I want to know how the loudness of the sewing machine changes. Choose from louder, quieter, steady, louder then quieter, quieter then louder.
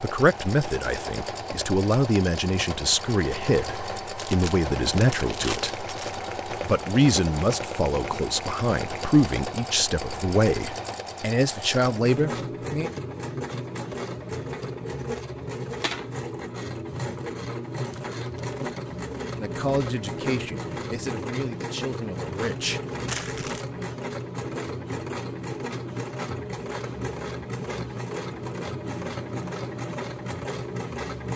steady.